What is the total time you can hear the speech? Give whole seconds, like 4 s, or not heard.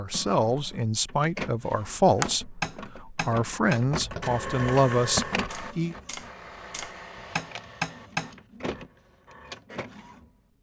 6 s.